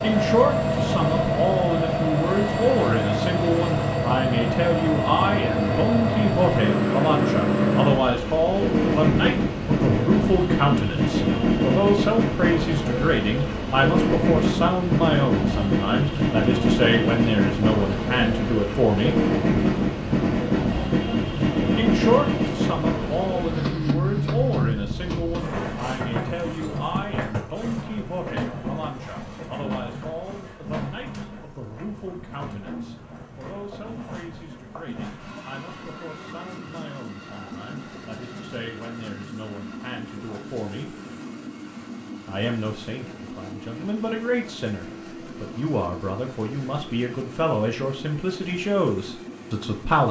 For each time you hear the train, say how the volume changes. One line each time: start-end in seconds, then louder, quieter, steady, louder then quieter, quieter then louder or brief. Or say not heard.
0.0-50.0 quieter.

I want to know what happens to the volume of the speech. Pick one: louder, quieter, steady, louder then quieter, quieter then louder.
quieter then louder.